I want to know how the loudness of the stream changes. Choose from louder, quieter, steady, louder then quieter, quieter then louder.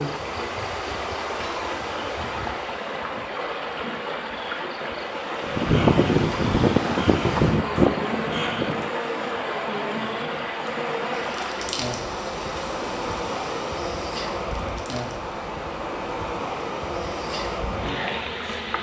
steady.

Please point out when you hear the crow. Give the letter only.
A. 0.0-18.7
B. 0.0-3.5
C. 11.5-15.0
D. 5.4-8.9
D.